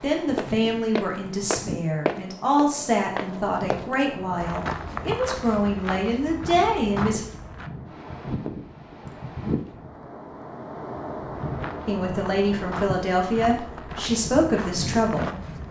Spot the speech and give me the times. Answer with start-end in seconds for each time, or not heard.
0.0-7.2, 11.8-15.3.